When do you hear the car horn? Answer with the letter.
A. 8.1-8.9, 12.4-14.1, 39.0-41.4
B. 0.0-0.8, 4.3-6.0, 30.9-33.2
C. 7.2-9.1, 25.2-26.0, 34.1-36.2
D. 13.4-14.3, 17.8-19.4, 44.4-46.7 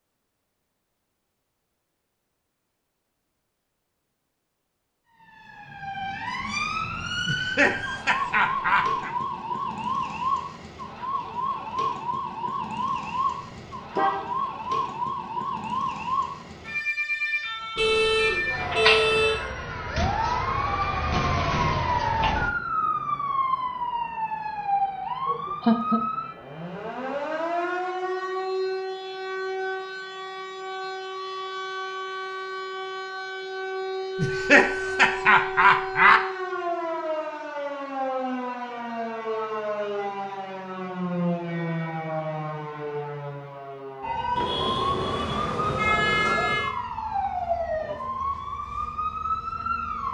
D.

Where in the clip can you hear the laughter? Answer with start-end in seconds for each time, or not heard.
7.2-9.1, 25.2-26.0, 34.1-36.2.